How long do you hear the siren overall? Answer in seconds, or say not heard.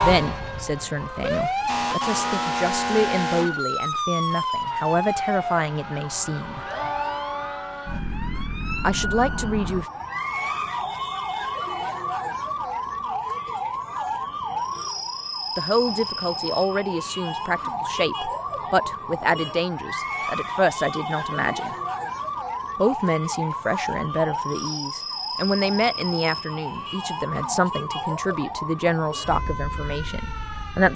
31 s.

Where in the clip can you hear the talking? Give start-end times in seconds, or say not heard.
0.0-6.7, 8.8-9.8, 15.6-21.8, 22.8-30.9.